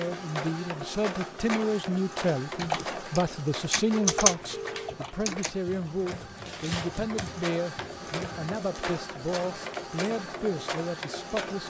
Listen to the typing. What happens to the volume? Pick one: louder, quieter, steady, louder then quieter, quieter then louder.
louder then quieter.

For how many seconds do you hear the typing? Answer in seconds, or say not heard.
6 s.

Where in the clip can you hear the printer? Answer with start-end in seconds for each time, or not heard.
0.0-11.6.